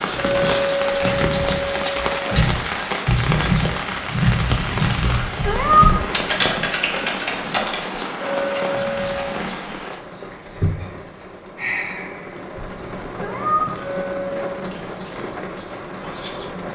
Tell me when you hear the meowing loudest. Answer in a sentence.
The loudest moment of the meowing is at 6 seconds.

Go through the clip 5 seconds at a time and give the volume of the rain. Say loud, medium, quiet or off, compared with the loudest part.
loud, loud, medium, medium.